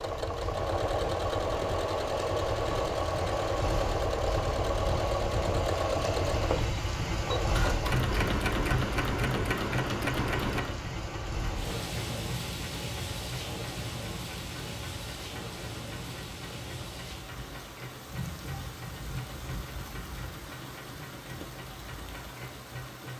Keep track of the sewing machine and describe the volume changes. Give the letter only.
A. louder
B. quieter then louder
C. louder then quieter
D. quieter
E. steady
D.